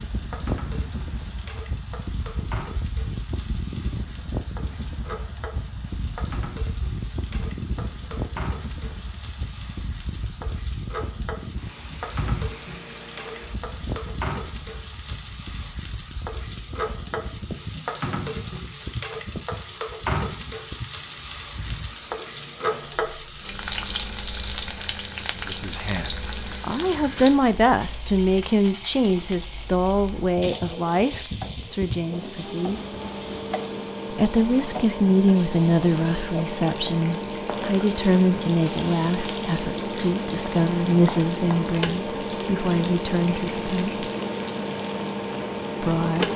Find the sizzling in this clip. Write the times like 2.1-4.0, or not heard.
0.0-46.3.